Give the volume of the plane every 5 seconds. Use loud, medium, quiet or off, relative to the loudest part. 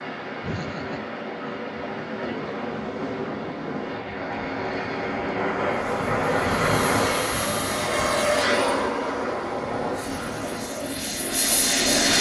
medium, loud, loud.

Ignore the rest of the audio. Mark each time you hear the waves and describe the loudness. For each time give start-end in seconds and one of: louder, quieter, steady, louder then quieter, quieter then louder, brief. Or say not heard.
0.0-12.1 louder then quieter.